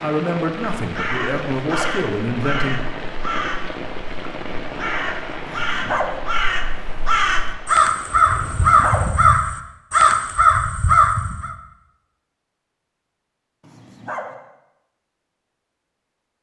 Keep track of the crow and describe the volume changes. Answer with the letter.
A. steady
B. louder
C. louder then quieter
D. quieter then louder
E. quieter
B.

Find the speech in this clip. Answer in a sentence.
The speech can be heard from 0.0 to 2.9 s.